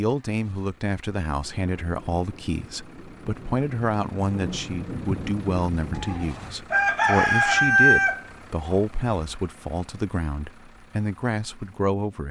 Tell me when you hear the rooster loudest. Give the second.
8 s.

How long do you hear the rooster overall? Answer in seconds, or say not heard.
3 s.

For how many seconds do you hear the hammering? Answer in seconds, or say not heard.
not heard.